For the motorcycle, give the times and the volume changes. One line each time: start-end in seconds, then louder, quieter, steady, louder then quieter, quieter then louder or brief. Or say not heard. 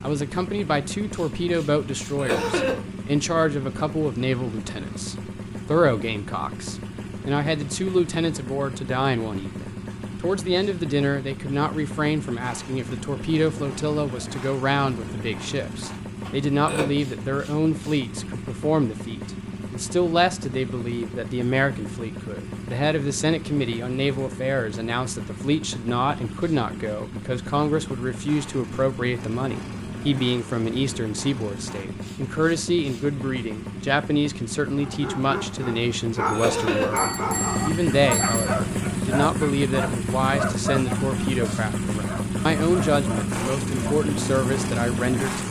0.0-45.4 louder.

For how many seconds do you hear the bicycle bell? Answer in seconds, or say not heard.
2 s.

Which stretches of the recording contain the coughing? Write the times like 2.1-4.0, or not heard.
2.1-2.8, 16.2-16.9, 36.3-37.1.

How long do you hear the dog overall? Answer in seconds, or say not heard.
9 s.